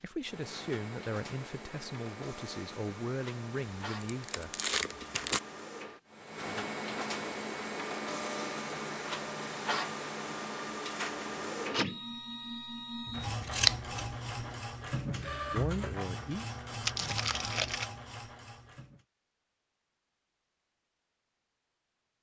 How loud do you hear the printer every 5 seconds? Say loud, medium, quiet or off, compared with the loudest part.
medium, loud, loud, loud, off.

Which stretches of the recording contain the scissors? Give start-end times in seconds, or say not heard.
13.1-14.6.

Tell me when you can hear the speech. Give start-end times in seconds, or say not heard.
0.0-4.5, 15.5-16.4.